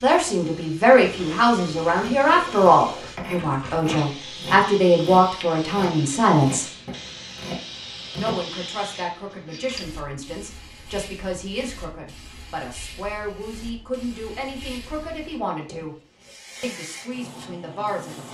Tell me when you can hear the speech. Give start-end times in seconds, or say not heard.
0.0-6.7, 8.2-15.9, 16.6-18.3.